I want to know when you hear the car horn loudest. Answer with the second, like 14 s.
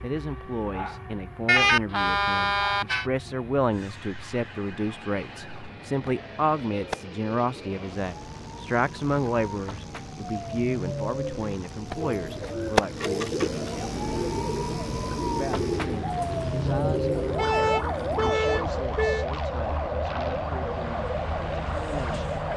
2 s.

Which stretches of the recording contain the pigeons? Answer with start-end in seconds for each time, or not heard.
12.1-18.4.